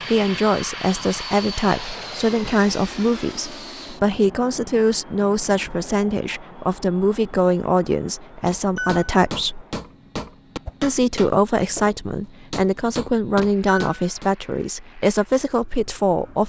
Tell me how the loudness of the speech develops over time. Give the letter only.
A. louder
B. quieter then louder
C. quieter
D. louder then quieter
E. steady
E.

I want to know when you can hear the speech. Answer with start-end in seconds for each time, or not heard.
0.1-9.7, 10.8-16.4.